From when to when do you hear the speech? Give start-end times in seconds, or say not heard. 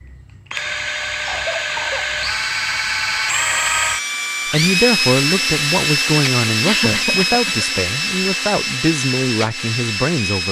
4.5-10.4.